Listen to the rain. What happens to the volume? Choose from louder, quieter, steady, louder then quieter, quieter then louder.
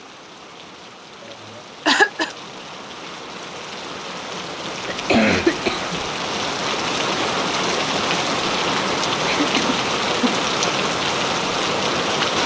louder.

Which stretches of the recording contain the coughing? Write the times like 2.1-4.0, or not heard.
1.6-2.3, 4.8-6.0, 9.3-10.4.